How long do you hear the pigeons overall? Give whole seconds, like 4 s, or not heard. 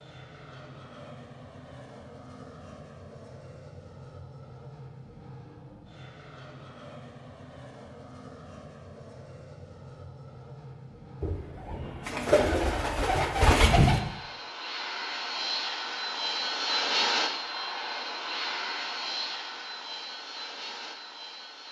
3 s.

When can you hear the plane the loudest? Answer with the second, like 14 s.
17 s.